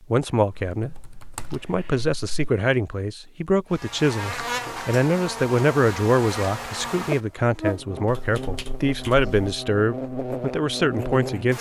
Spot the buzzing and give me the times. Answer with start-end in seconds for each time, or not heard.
3.7-11.5.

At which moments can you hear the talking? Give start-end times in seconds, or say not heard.
0.1-11.5.